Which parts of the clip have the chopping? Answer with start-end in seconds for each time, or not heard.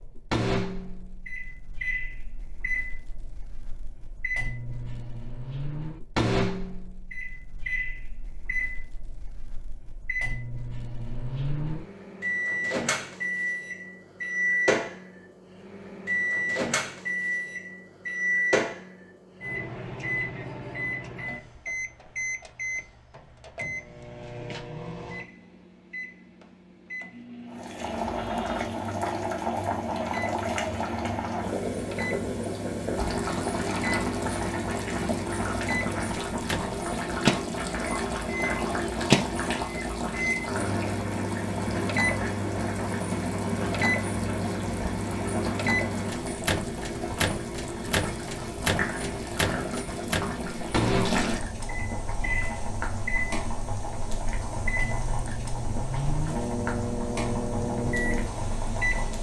not heard.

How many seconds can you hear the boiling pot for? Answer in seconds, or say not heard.
32 s.